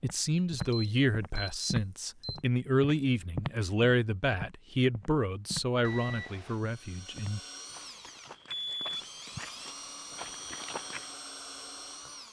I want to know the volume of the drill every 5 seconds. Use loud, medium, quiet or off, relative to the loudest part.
off, loud, loud.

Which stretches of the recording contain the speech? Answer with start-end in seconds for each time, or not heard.
0.0-7.4.